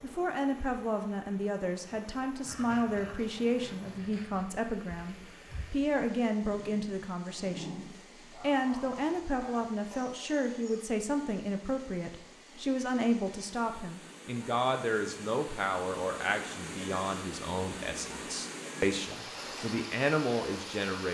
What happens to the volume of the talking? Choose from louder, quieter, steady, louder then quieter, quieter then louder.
steady.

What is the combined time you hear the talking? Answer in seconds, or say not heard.
21 s.